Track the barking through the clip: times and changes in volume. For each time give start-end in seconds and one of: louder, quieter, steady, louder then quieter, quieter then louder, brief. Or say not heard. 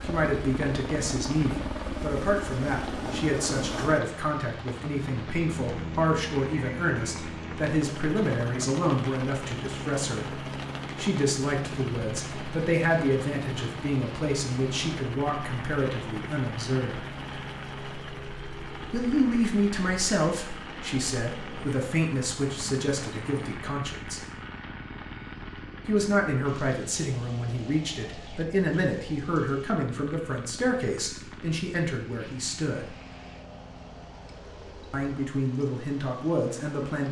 not heard.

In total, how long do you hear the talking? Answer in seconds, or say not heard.
31 s.